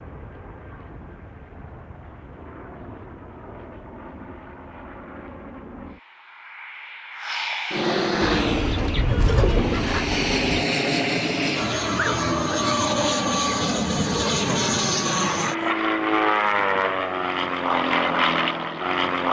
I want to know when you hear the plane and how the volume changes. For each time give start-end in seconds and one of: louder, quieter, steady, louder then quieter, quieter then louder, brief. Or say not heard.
0.0-19.2 louder.